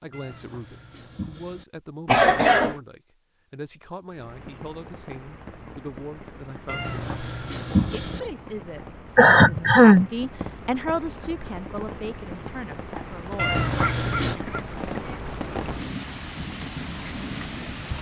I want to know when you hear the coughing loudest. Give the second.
10 s.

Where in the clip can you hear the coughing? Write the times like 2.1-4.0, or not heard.
2.0-2.8, 9.2-10.1, 13.7-15.2.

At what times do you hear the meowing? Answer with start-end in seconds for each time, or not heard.
0.1-1.6, 6.7-8.2, 13.3-14.3.